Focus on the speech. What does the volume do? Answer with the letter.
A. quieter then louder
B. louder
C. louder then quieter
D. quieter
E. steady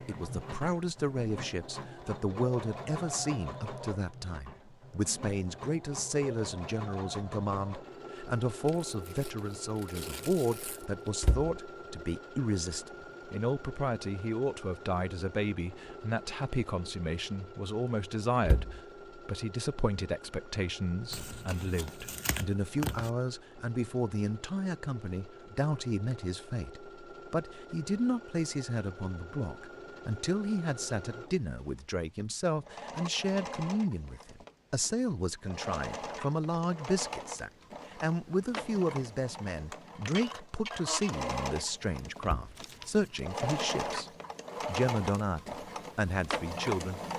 E.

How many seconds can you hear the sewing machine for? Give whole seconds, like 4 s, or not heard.
47 s.